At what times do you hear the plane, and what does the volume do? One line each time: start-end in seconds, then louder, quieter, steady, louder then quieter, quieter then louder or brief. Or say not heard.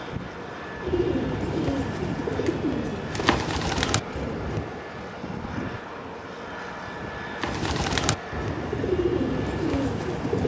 0.0-10.4 steady.